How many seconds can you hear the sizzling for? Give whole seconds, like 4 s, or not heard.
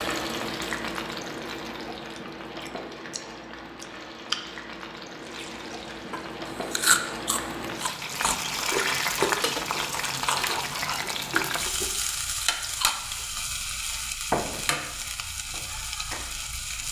17 s.